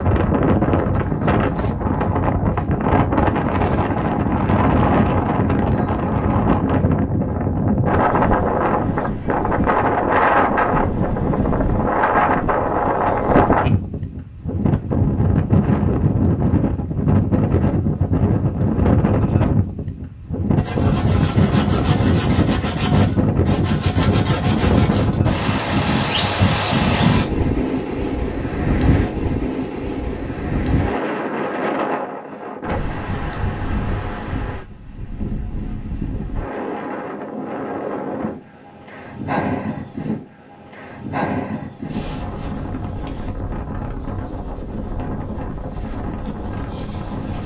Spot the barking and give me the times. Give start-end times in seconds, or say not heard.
not heard.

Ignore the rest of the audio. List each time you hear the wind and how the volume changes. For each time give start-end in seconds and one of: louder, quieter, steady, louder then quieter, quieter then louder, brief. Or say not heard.
0.0-47.4 quieter.